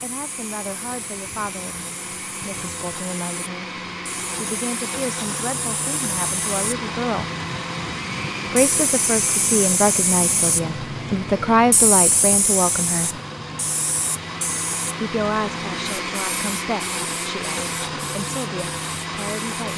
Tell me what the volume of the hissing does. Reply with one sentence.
The loudness of the hissing goes up, then down.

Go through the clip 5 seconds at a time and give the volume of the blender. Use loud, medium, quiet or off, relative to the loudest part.
medium, loud, medium, loud.